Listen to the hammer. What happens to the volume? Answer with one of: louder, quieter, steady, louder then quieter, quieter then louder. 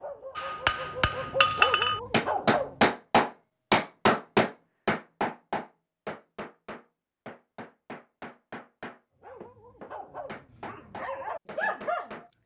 quieter.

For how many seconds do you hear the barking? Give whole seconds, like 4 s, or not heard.
6 s.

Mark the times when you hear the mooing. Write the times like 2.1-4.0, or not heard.
not heard.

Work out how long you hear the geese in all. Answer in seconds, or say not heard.
not heard.